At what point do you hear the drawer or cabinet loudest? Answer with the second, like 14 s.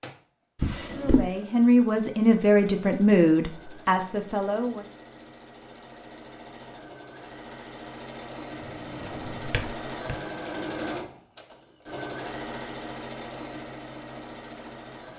1 s.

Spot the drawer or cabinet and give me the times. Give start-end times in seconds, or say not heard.
0.6-1.3, 8.6-10.2.